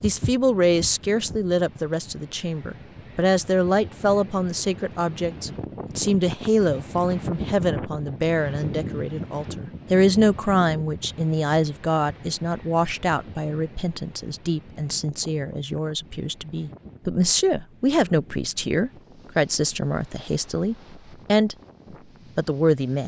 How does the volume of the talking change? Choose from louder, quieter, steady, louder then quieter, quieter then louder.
steady.